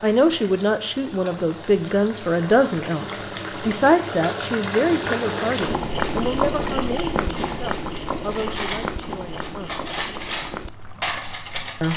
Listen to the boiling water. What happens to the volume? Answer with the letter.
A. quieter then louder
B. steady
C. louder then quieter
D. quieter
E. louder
C.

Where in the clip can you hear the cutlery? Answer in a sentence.
The cutlery can be heard from 7.3 to 11.9 s.